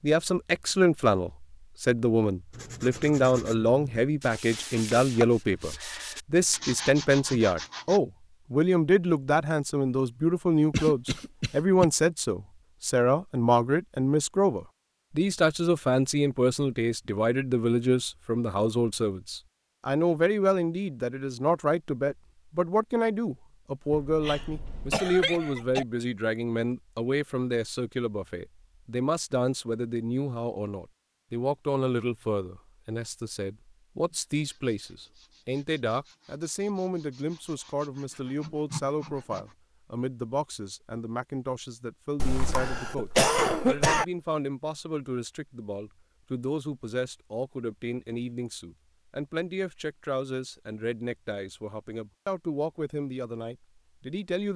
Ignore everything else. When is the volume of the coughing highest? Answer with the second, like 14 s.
43 s.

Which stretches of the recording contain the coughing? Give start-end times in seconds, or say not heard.
10.7-11.8, 23.9-25.9, 42.1-44.0.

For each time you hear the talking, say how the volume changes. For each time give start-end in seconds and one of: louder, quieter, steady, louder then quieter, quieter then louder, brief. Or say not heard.
0.0-54.5 quieter.